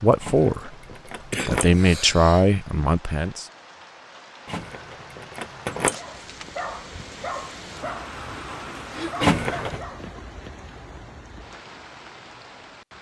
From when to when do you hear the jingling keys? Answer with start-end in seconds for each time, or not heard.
0.2-1.7, 4.5-6.0, 9.2-9.8.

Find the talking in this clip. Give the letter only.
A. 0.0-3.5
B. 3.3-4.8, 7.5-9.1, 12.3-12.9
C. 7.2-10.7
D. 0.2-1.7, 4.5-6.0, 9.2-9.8
A.